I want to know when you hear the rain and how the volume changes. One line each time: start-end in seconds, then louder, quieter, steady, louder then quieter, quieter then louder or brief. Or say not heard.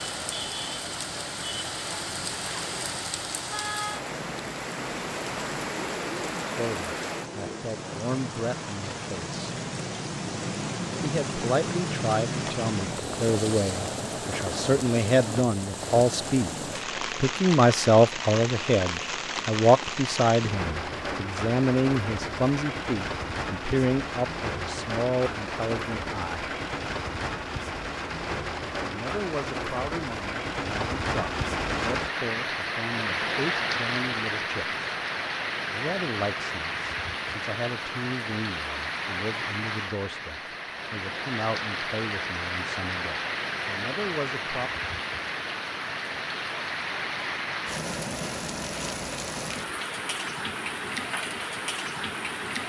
0.0-52.6 steady.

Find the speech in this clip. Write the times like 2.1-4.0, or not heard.
6.5-9.3, 11.0-26.6, 28.8-34.8, 35.7-44.7.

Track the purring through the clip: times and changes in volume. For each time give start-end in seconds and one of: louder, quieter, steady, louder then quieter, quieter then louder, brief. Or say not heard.
not heard.